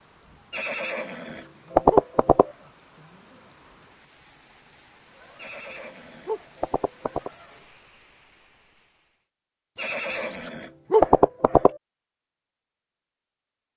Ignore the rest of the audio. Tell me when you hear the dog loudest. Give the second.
11 s.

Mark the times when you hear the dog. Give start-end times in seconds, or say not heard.
0.8-2.6, 5.1-6.5, 9.8-11.7.